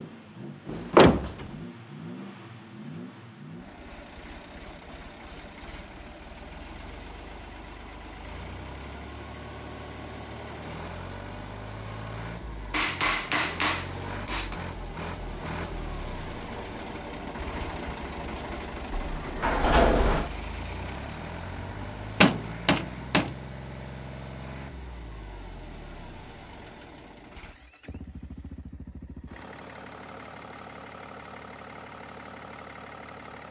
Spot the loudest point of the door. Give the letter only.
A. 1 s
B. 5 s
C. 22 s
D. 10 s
A.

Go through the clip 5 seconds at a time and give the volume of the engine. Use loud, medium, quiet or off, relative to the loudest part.
medium, medium, loud, loud, loud, medium, medium.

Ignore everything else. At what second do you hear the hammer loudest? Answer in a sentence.
The volume of the hammer peaks at 22 seconds.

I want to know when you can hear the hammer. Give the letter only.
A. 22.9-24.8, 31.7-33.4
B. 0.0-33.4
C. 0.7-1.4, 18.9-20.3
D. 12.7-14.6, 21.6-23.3
D.